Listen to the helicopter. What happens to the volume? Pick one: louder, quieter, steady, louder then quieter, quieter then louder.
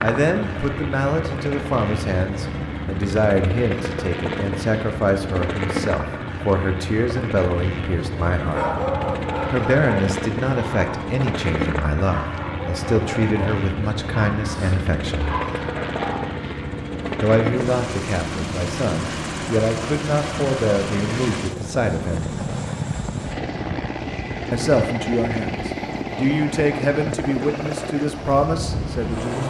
steady.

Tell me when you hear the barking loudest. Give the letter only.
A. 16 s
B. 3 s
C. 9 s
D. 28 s
C.